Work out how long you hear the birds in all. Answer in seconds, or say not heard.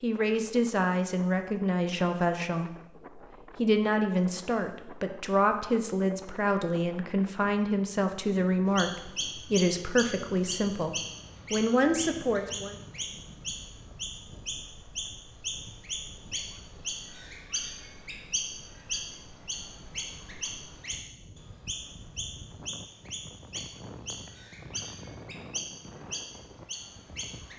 19 s.